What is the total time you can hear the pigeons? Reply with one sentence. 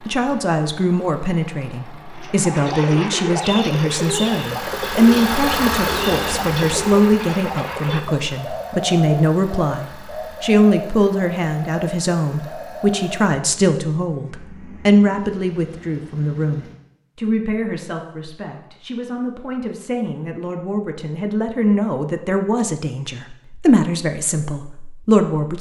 The pigeons can be heard for 11 seconds in total.